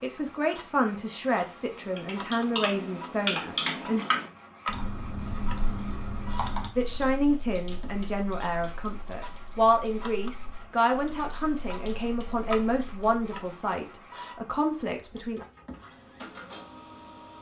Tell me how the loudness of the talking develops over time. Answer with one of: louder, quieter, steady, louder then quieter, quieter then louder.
steady.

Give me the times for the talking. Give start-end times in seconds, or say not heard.
0.0-4.0, 6.8-15.4.